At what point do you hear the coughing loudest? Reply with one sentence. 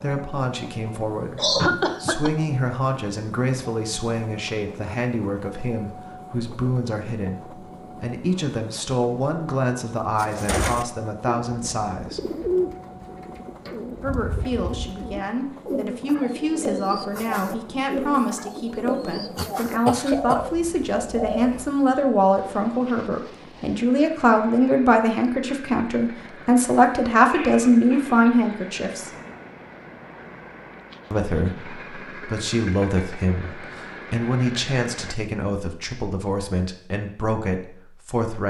The loudest moment of the coughing is at 2 seconds.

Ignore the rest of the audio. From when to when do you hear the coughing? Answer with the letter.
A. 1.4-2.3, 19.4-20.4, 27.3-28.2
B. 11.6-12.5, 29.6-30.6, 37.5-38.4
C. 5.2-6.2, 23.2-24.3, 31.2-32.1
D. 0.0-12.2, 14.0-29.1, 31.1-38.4
A.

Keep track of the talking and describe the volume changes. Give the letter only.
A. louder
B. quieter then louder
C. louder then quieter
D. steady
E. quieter
C.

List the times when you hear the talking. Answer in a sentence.
You can hear the talking from 0.0 to 12.2 s, from 14.0 to 29.1 s and from 31.1 to 38.4 s.